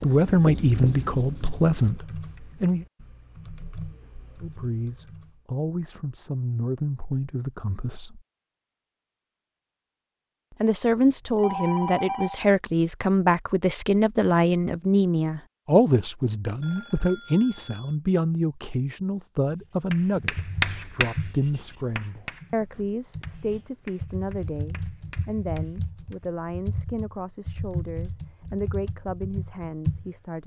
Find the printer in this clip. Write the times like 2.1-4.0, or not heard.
not heard.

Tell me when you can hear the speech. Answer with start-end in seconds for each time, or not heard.
0.0-2.9, 4.4-8.2, 10.6-30.4.